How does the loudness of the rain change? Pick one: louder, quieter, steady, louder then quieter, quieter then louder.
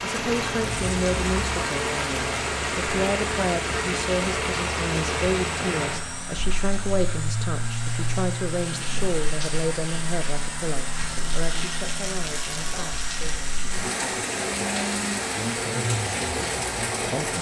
quieter then louder.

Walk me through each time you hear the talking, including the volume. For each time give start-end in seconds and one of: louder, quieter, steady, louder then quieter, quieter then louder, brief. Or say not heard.
0.0-17.3 quieter.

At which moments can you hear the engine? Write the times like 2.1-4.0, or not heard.
0.1-17.3.